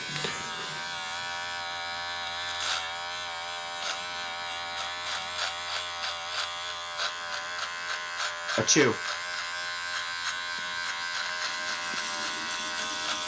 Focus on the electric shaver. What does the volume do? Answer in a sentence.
The volume of the electric shaver stays about the same.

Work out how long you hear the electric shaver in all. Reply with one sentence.
The electric shaver can be heard for 13 seconds in total.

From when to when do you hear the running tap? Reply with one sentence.
You can hear the running tap from 11.3 to 13.2 s.